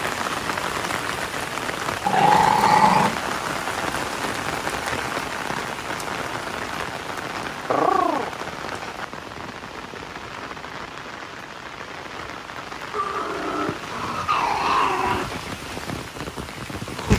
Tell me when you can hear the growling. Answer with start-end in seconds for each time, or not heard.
2.0-3.4, 7.7-8.3, 12.9-15.4.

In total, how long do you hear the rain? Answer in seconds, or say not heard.
17 s.